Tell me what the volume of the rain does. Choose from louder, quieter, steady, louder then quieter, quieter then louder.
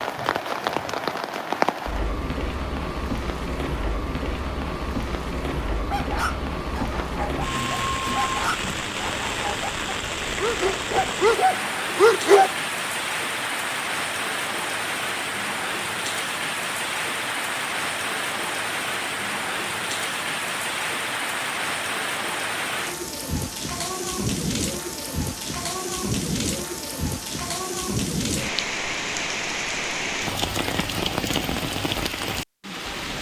steady.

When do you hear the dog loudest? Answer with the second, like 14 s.
12 s.